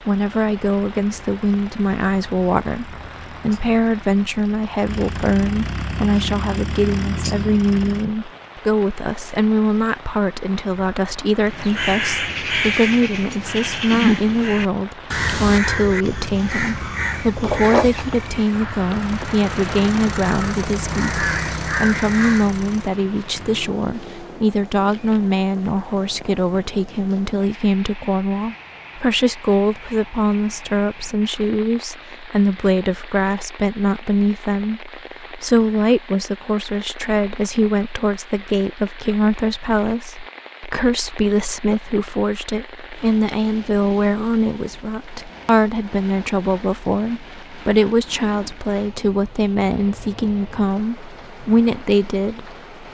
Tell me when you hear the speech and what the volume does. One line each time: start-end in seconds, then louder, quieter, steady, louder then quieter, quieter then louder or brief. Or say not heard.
0.1-52.5 steady.